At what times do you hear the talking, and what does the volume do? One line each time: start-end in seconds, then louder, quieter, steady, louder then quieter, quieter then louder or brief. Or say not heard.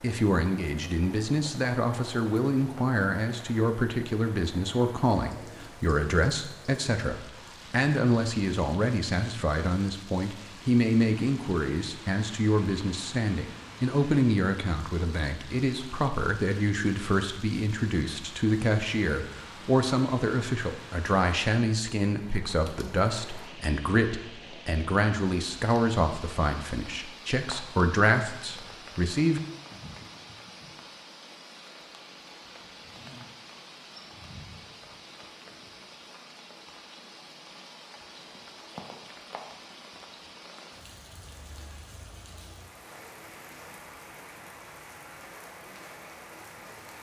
0.0-29.4 steady.